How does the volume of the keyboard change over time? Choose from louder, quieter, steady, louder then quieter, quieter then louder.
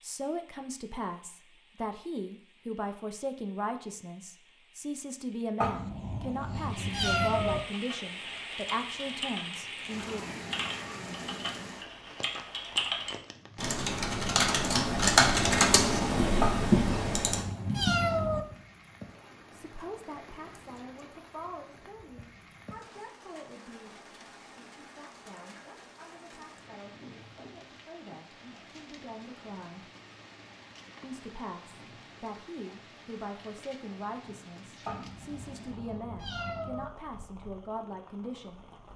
louder.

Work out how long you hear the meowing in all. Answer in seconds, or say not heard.
6 s.